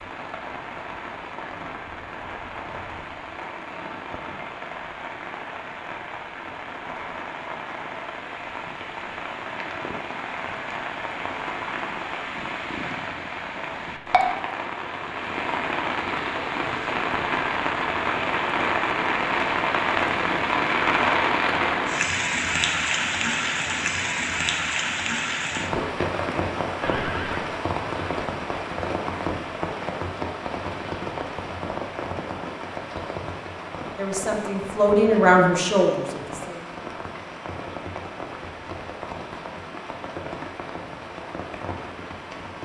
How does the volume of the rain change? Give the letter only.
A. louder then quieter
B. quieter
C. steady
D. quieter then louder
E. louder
A.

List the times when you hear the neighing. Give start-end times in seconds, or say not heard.
26.8-27.5.